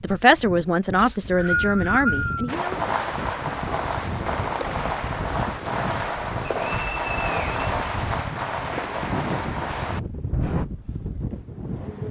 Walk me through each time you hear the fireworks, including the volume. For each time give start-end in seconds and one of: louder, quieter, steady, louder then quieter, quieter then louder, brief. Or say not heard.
2.5-10.7 steady.